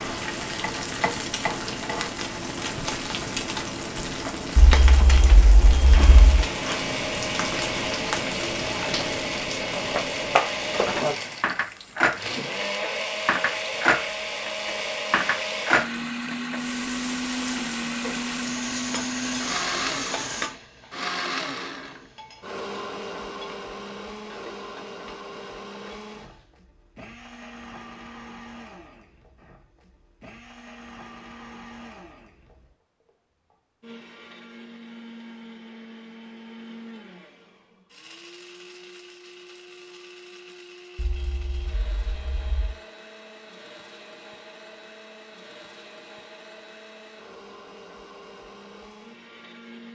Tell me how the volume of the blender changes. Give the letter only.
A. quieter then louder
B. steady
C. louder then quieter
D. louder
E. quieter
E.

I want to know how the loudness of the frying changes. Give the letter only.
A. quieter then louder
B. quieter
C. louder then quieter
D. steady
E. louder
B.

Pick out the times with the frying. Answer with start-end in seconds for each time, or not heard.
0.0-26.6.